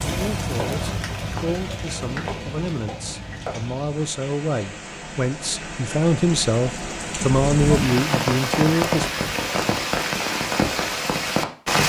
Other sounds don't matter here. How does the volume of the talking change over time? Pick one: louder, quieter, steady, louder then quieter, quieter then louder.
louder.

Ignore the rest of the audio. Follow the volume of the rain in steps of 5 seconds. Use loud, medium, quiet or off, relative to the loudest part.
medium, loud, loud.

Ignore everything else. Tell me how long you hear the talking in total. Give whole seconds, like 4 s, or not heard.
9 s.